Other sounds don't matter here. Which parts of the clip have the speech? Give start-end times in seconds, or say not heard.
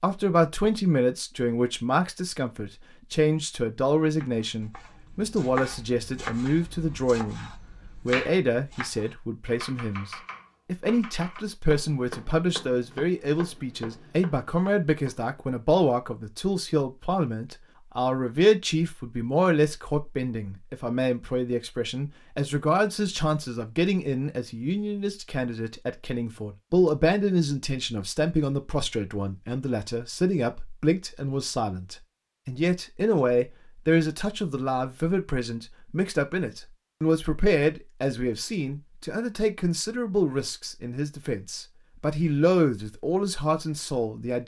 0.0-44.4.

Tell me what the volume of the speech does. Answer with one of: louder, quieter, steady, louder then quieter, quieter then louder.
steady.